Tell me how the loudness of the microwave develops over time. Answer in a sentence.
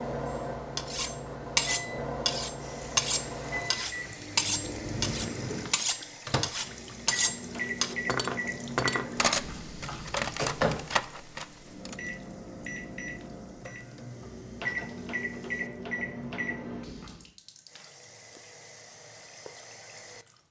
The volume of the microwave stays about the same.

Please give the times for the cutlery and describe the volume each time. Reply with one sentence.
You can hear the cutlery from 0.8 to 11.9 s, getting quieter.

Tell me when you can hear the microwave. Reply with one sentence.
You can hear the microwave from 0.0 to 17.2 s.